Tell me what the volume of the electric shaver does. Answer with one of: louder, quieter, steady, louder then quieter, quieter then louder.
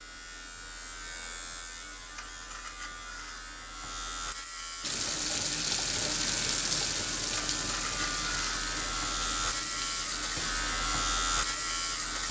louder.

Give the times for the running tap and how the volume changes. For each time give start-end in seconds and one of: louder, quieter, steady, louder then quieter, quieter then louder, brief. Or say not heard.
4.8-12.2 quieter.